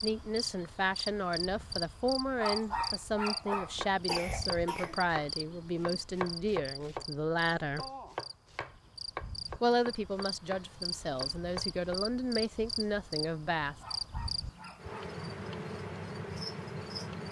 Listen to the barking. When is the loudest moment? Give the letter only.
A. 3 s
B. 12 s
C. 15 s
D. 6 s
A.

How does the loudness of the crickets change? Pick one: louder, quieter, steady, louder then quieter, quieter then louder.
quieter then louder.